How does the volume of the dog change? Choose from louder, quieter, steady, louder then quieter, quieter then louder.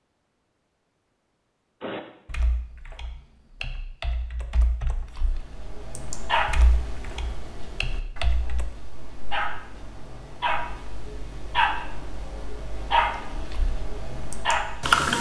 quieter then louder.